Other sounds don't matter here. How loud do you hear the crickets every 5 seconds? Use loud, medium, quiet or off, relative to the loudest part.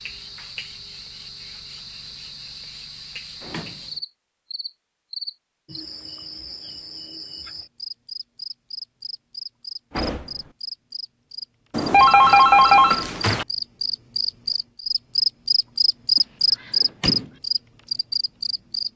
quiet, quiet, medium, loud.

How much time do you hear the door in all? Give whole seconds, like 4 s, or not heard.
2 s.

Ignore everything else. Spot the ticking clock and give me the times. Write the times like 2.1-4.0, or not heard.
not heard.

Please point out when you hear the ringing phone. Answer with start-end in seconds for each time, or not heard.
11.7-13.4.